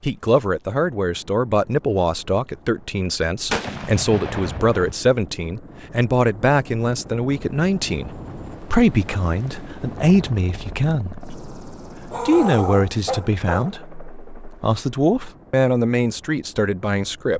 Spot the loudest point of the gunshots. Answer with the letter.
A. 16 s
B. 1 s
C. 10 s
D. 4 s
D.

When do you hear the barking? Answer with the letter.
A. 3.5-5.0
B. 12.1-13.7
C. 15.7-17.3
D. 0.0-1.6
B.